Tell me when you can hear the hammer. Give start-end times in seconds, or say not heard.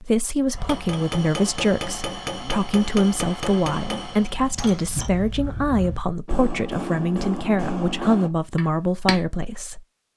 0.5-9.2.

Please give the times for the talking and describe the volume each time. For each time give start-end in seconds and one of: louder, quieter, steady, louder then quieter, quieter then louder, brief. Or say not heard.
0.0-9.8 steady.